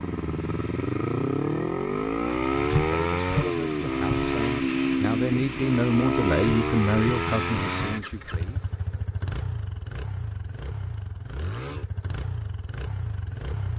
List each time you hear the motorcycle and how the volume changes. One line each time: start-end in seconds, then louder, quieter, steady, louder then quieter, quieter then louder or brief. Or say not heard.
0.0-13.7 quieter.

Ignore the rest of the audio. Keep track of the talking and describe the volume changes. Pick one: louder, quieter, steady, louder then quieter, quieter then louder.
louder then quieter.